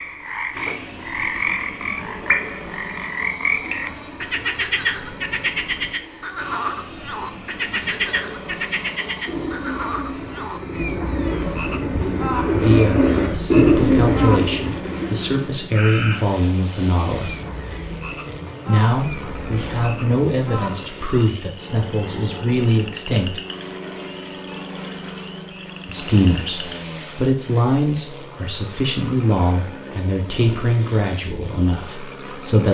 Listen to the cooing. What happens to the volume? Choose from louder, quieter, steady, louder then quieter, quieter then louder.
louder.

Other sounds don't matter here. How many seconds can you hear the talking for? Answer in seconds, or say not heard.
17 s.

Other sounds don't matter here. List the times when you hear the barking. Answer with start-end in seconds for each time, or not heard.
not heard.